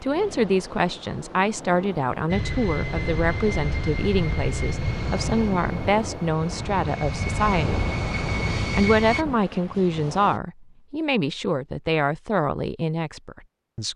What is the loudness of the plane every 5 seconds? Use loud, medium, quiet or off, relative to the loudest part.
loud, loud, off.